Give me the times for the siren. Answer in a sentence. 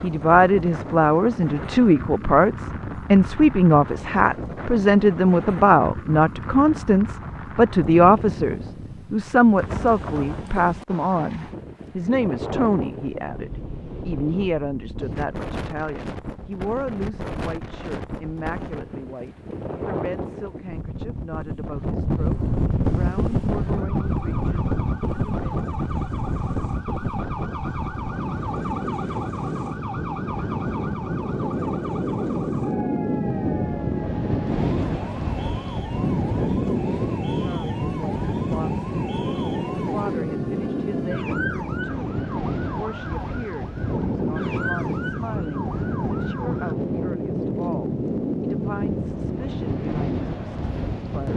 You can hear the siren from 22.8 to 46.8 s.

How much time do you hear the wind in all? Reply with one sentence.
The wind can be heard for 51 seconds in total.